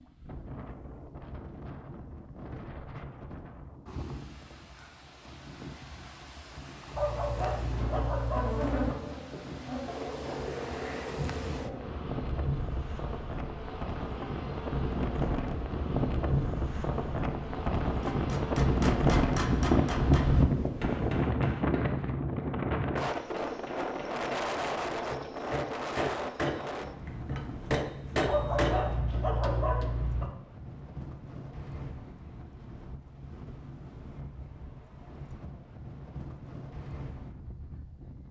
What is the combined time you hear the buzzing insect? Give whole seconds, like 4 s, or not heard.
13 s.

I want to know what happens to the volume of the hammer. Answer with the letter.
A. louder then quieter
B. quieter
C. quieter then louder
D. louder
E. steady
C.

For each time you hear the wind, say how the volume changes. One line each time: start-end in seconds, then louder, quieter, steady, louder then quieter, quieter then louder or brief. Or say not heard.
0.0-38.2 louder then quieter.